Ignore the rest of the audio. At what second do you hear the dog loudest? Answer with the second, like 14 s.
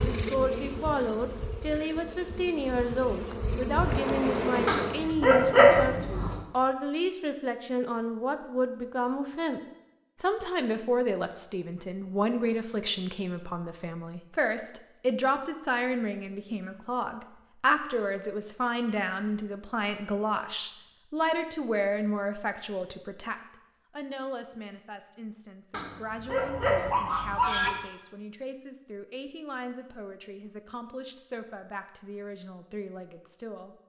6 s.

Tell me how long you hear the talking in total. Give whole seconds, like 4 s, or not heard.
34 s.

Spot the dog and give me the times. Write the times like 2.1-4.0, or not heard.
4.7-6.3, 25.7-27.7.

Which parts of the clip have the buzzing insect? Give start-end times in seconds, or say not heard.
0.0-5.2.